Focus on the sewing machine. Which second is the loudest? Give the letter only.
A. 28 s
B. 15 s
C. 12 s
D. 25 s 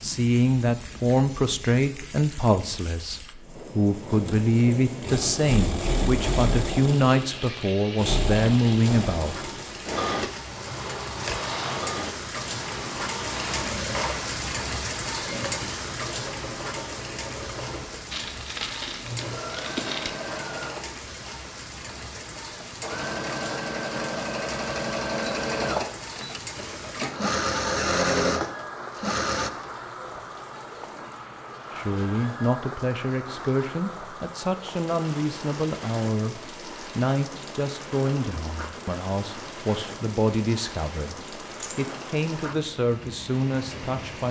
A.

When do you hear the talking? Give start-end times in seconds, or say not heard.
0.0-9.3, 31.7-44.2.